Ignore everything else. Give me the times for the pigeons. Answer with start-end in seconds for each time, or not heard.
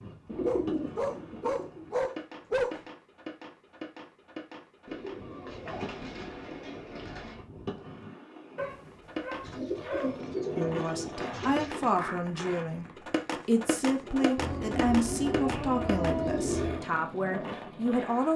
0.2-1.9, 4.8-7.4, 9.4-11.9, 14.3-16.9.